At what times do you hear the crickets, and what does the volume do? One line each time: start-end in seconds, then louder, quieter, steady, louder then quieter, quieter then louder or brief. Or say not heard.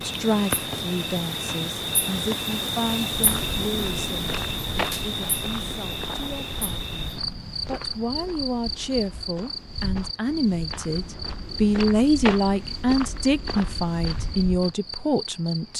0.0-15.7 quieter.